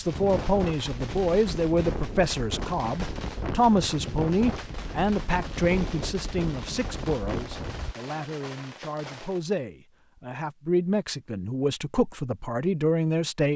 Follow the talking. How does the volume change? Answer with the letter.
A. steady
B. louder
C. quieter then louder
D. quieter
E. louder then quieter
C.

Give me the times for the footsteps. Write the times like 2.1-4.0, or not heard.
not heard.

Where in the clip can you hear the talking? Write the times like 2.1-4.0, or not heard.
0.0-13.5.